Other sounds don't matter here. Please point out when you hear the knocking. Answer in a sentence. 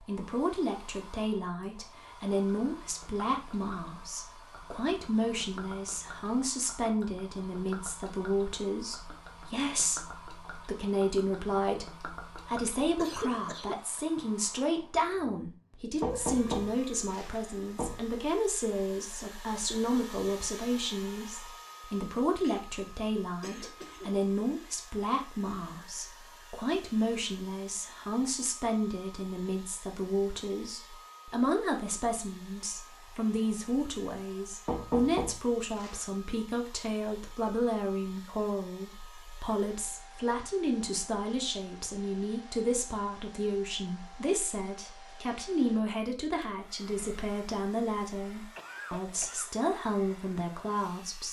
You can hear the knocking from 16.0 to 17.9 s and from 34.6 to 36.0 s.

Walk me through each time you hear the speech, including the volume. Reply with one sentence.
You can hear the speech from 0.1 to 51.2 s, at a steady volume.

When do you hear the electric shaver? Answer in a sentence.
You can't hear the electric shaver here.